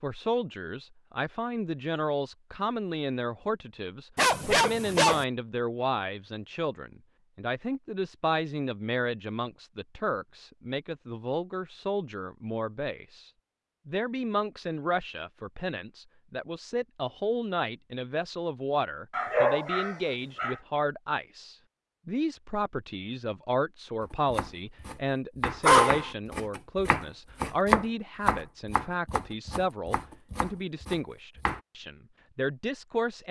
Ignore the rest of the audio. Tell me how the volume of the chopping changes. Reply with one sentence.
The volume of the chopping goes up, then down.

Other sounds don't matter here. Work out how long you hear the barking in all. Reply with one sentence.
You can hear the barking for 3 seconds altogether.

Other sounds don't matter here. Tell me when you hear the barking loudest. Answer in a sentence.
The loudest moment of the barking is at 26 seconds.